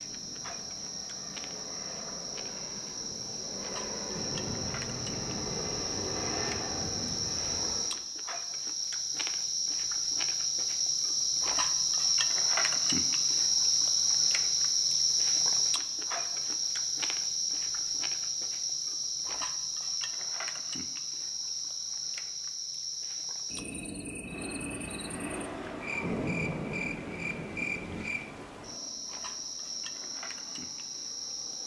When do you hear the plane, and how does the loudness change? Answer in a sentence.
The plane can be heard from 0.0 to 8.1 s, getting louder; and from 24.2 to 31.6 s, getting quieter.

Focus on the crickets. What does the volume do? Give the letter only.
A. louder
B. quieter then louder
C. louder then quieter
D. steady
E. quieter
C.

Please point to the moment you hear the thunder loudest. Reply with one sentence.
The volume of the thunder peaks at 26 seconds.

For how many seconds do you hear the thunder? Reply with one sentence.
You can hear the thunder for 6 seconds altogether.